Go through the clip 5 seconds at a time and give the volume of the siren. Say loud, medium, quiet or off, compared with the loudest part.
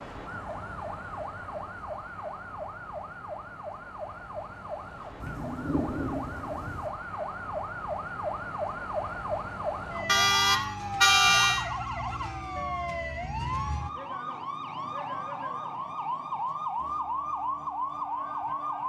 medium, loud, loud, loud.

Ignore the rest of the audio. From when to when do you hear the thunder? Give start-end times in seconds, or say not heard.
5.2-6.9.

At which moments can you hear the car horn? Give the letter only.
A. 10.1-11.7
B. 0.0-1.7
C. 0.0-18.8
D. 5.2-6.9
A.